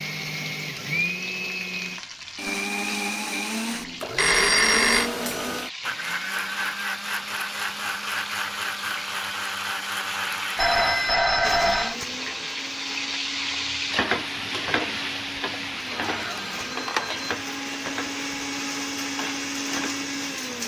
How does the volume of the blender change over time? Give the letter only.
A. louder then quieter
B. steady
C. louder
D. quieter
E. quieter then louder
E.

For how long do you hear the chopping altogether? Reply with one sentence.
You can't hear the chopping here.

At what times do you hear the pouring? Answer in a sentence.
The pouring can't be heard in this clip.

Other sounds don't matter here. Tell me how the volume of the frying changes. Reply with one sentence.
The loudness of the frying goes up, then down.